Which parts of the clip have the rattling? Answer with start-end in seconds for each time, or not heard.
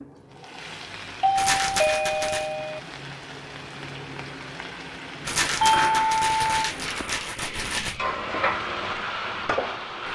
1.4-2.5, 5.2-8.0.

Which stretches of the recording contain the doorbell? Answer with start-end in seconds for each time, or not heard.
0.8-2.8, 5.6-6.6.